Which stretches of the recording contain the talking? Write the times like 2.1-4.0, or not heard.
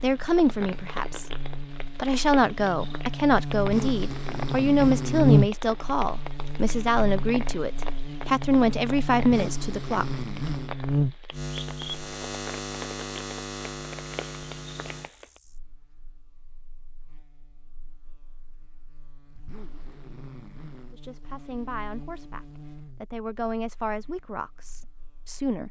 0.0-1.2, 1.9-10.2, 20.9-25.6.